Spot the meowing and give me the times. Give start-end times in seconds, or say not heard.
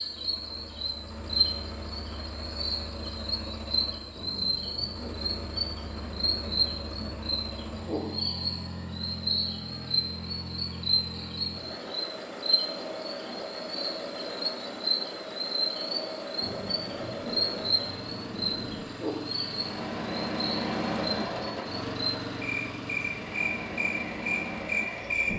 not heard.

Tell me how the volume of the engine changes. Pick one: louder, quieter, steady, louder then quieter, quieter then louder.
louder.